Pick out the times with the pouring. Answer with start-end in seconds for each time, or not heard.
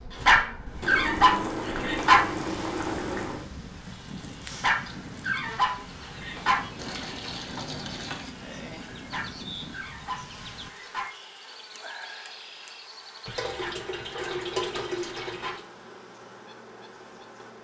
0.8-3.5, 6.8-8.3, 13.2-15.7.